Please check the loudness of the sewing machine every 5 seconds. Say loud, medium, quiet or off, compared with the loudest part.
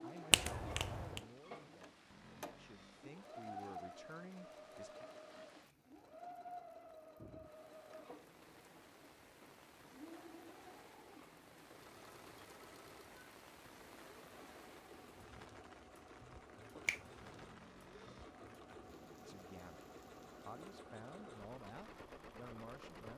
loud, loud, medium, medium, loud.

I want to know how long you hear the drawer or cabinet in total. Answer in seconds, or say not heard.
2 s.